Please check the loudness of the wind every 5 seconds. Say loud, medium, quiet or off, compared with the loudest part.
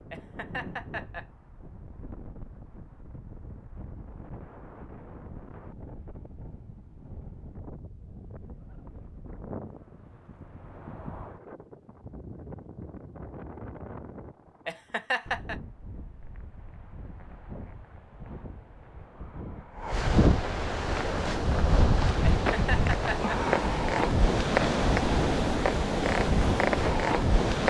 quiet, quiet, quiet, quiet, loud, loud.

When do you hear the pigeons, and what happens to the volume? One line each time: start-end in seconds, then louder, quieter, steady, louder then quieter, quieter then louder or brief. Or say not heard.
not heard.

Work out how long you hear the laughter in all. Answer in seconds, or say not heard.
3 s.